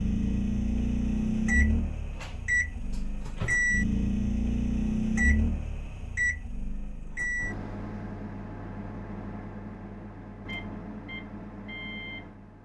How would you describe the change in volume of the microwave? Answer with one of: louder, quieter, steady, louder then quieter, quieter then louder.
quieter.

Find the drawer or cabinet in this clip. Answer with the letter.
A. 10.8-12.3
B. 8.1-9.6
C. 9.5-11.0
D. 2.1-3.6
D.